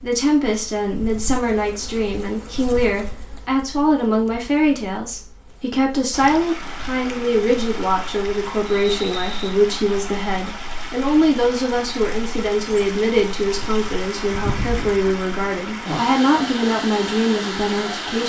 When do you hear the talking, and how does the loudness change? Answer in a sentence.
You can hear the talking from 0.0 to 18.2 s, at a steady volume.